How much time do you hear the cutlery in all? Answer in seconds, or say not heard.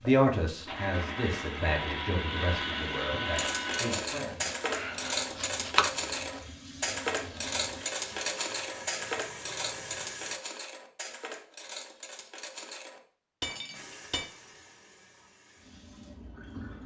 11 s.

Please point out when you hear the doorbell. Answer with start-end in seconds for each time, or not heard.
not heard.